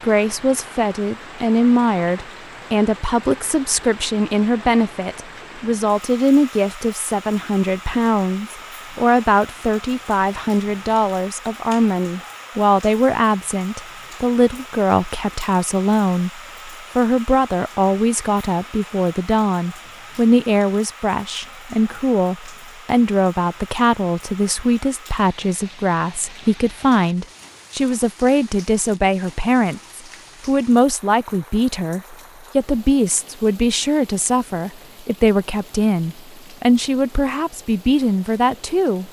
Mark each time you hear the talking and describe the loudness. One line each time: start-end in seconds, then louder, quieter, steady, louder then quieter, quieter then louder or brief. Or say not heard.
0.0-39.0 steady.